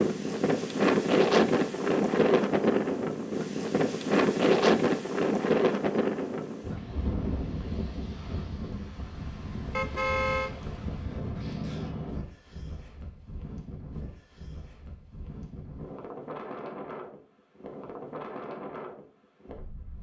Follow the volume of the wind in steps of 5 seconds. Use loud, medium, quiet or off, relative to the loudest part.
loud, medium, quiet, quiet.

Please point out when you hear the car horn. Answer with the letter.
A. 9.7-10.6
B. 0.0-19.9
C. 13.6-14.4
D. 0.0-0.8
A.